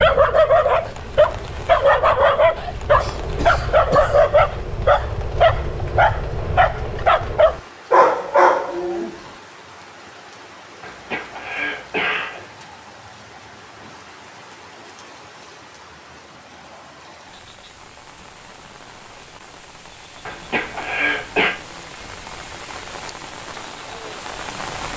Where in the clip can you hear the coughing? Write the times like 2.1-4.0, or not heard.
3.0-4.2, 10.8-12.4, 20.2-21.5.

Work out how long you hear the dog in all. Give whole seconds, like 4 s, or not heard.
9 s.